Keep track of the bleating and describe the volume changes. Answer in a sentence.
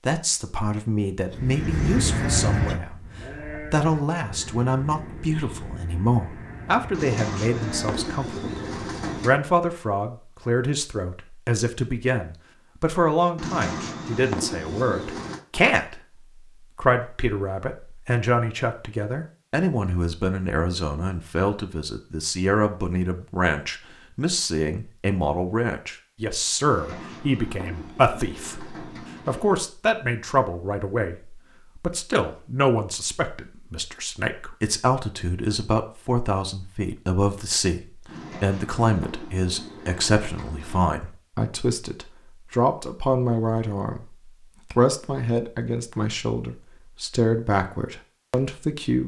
The volume of the bleating goes down.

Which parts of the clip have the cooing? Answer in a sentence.
The cooing can be heard from 6.9 to 9.3 s, from 13.3 to 15.4 s, from 26.6 to 29.6 s and from 38.0 to 40.9 s.